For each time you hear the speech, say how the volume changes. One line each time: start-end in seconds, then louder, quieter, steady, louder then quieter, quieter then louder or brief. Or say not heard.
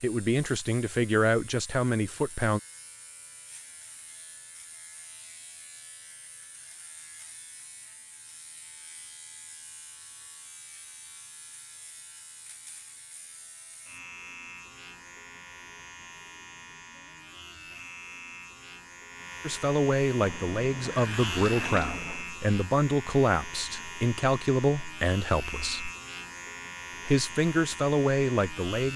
0.0-2.6 brief
19.4-25.9 steady
27.1-28.9 brief.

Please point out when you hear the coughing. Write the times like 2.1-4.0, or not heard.
not heard.